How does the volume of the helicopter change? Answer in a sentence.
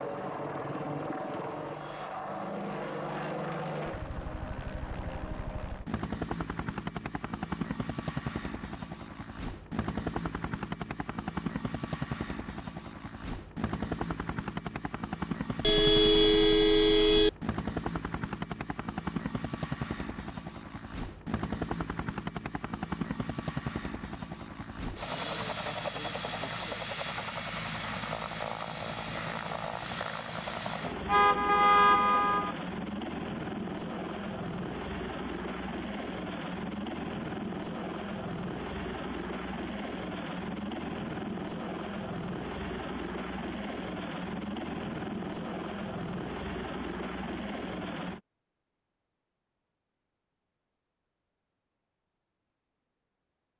The volume of the helicopter stays about the same.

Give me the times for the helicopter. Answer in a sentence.
You can hear the helicopter from 0.0 to 48.2 s.